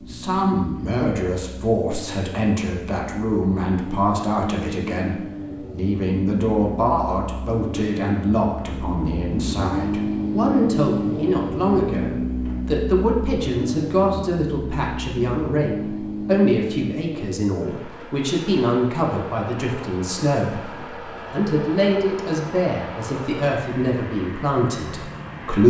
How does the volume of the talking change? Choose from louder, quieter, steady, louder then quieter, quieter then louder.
steady.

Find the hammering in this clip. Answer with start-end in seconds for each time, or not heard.
not heard.